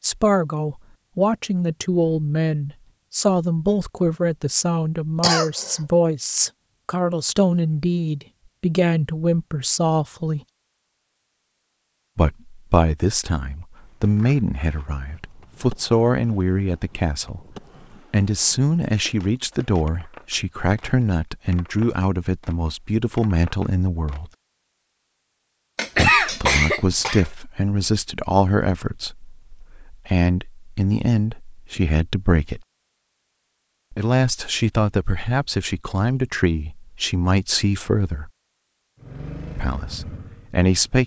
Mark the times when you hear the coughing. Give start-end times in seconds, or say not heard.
5.2-5.8, 25.8-27.2.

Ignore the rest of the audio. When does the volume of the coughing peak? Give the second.
26 s.